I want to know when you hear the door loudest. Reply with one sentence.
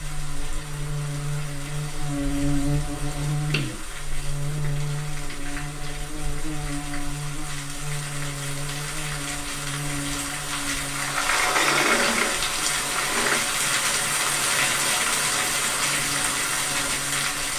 The loudest moment of the door is at 12 seconds.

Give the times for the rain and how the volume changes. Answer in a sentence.
You can hear the rain from 0.0 to 17.5 s, getting louder.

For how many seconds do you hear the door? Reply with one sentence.
The door can be heard for 3 seconds in total.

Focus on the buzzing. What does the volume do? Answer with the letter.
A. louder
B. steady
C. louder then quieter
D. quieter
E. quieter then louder
D.